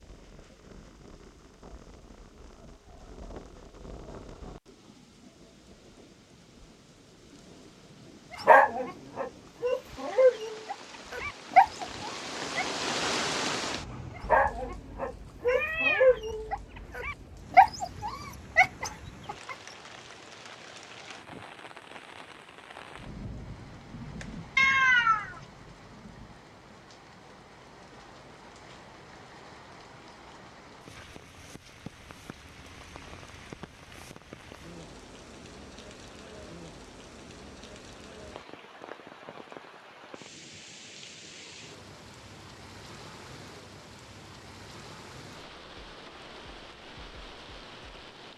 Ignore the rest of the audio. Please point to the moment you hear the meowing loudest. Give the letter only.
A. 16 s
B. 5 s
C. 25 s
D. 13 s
C.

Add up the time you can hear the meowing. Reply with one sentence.
The meowing can be heard for 2 seconds in total.